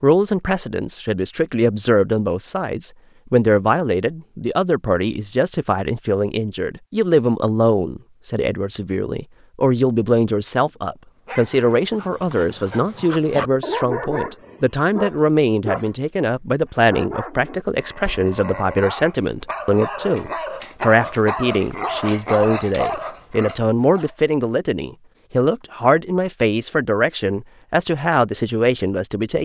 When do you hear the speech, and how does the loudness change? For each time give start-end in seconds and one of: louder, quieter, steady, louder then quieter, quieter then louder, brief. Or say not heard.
0.0-29.4 steady.